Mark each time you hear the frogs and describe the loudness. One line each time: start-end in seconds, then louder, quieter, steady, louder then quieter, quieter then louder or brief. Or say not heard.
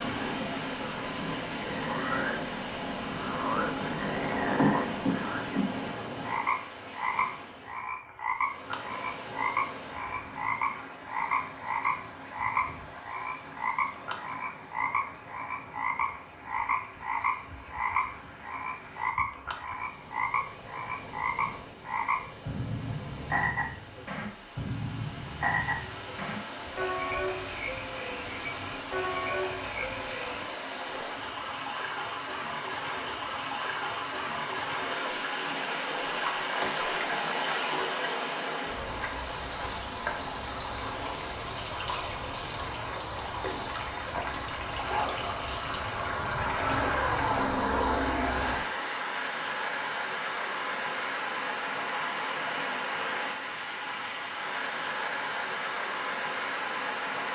0.0-30.4 steady.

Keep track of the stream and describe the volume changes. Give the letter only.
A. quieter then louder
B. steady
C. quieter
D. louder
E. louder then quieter
A.